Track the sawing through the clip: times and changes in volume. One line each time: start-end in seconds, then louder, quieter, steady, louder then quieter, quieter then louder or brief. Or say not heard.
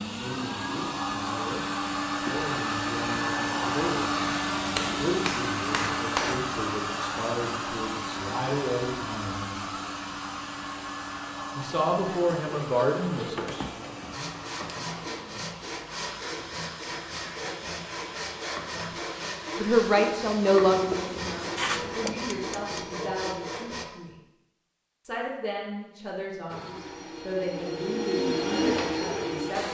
12.4-23.9 steady.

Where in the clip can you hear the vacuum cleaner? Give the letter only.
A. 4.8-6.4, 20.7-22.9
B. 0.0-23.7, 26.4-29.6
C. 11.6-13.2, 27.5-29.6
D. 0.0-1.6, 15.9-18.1
B.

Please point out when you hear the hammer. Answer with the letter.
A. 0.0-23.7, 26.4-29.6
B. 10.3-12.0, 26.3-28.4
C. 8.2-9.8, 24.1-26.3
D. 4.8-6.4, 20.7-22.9
D.